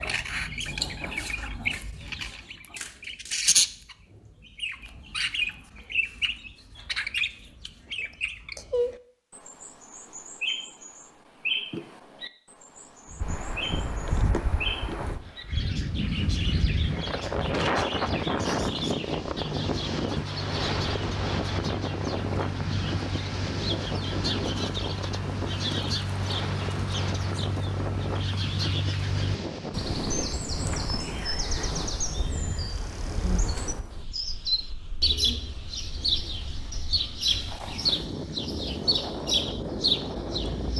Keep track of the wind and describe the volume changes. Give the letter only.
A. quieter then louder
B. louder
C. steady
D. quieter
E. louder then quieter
D.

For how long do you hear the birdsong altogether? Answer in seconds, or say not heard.
41 s.